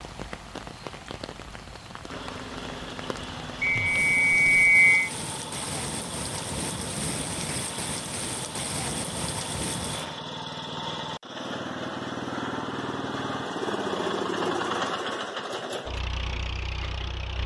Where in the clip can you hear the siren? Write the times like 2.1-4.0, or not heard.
not heard.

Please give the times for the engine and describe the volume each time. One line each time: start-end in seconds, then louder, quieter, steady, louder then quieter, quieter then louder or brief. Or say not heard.
2.0-17.4 louder.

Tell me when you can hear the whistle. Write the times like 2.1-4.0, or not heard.
3.6-5.1.